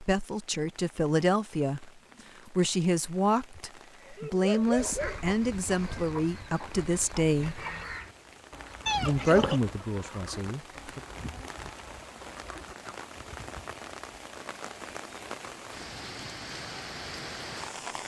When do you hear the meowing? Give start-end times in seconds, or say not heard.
8.8-9.6.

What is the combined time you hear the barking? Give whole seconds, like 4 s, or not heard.
2 s.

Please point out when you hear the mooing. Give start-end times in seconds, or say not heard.
not heard.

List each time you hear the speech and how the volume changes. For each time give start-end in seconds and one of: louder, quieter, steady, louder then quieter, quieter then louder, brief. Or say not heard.
0.0-7.7 steady
9.0-11.0 brief.